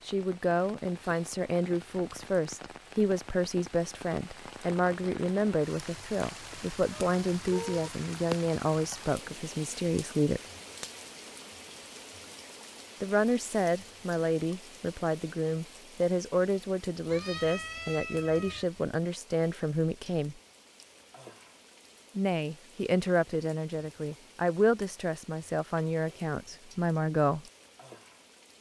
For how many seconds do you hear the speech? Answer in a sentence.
You can hear the speech for 23 seconds altogether.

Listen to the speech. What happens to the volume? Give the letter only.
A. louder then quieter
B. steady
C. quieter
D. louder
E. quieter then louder
B.